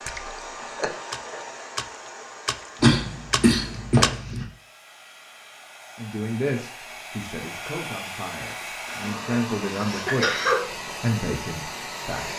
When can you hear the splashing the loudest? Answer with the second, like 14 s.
4 s.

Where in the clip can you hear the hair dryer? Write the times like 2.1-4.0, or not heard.
0.0-12.3.